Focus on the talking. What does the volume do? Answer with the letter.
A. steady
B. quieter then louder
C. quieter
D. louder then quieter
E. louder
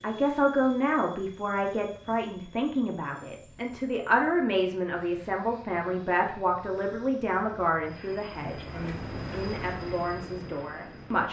C.